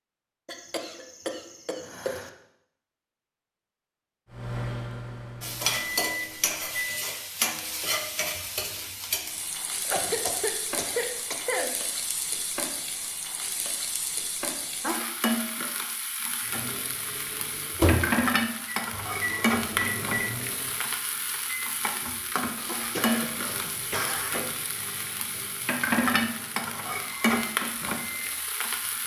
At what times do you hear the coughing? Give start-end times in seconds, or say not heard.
0.5-2.3, 9.8-11.7, 22.6-24.6.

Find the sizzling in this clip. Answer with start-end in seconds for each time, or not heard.
5.4-29.0.